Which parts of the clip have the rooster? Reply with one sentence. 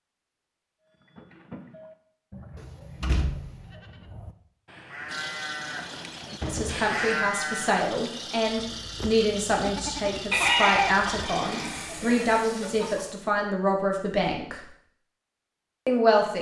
The rooster can be heard from 10.3 to 13.0 s.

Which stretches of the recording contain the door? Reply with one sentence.
The door can be heard from 2.5 to 3.6 s, from 6.4 to 6.8 s and from 11.4 to 12.1 s.